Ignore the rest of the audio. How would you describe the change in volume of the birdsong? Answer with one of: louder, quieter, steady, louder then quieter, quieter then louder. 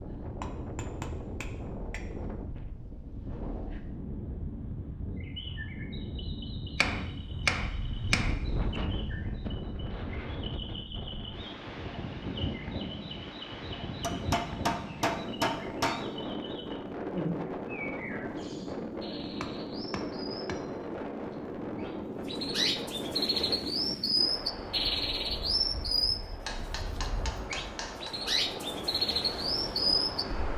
louder.